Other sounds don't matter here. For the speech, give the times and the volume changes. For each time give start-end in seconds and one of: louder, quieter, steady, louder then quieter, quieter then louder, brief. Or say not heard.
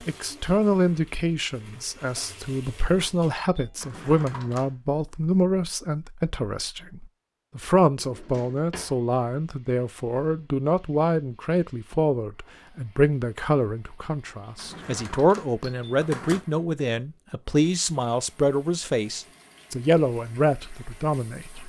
0.1-21.6 steady.